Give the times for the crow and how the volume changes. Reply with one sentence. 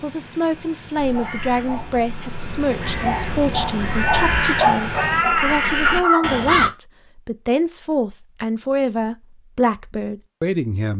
You can hear the crow from 0.9 to 6.7 s, getting louder.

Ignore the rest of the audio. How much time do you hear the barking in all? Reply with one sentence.
The barking can be heard for 5 seconds in total.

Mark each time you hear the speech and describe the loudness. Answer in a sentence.
You can hear the speech from 0.0 to 10.9 s, at a steady volume.